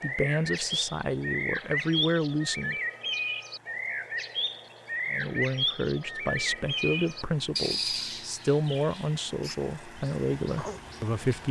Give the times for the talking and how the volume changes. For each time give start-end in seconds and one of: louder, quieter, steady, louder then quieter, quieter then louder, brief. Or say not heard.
0.0-2.8 brief
5.1-11.4 steady.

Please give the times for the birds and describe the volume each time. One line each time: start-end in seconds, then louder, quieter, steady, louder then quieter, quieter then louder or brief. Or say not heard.
0.0-11.2 quieter.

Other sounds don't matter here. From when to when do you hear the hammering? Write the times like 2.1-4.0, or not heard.
not heard.